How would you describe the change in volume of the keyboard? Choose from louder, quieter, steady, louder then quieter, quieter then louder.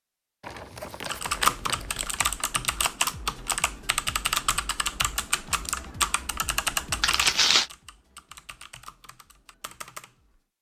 quieter.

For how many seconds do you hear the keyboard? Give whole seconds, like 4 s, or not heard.
9 s.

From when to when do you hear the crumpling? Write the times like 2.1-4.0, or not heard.
0.4-2.1, 7.0-7.7.